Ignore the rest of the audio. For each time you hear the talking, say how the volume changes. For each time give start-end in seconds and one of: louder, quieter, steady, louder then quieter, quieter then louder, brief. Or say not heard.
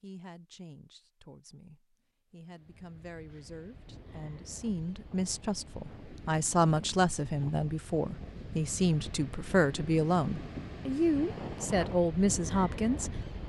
0.0-13.4 louder.